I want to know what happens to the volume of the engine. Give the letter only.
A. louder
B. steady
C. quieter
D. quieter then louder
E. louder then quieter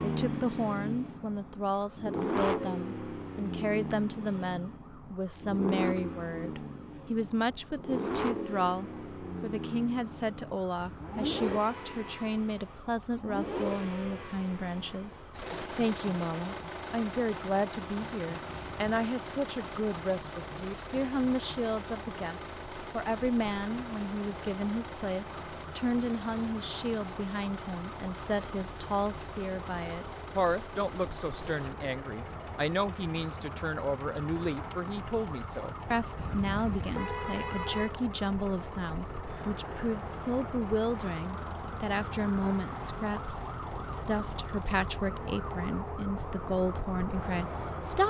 C.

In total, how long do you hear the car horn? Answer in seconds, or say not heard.
4 s.